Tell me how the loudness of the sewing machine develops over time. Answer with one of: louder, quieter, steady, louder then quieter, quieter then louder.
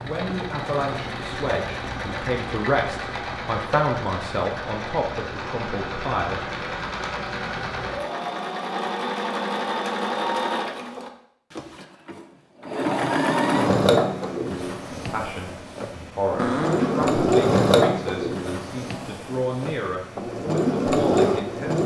louder.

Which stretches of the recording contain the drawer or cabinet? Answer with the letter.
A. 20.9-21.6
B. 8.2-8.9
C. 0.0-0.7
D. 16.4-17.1
D.